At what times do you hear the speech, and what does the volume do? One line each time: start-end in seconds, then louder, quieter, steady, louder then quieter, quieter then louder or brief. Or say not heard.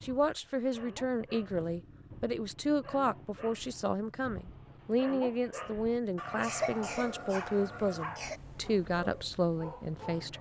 0.0-10.3 steady.